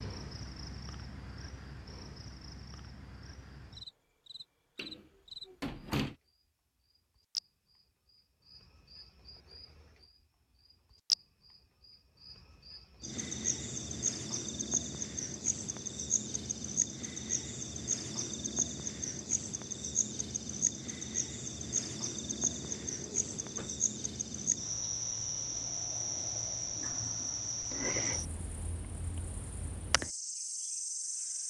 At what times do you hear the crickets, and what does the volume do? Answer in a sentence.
You can hear the crickets from 0.0 to 31.4 s, getting louder.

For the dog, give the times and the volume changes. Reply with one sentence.
The dog can't be heard in this clip.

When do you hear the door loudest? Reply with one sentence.
The loudest moment of the door is at 6 seconds.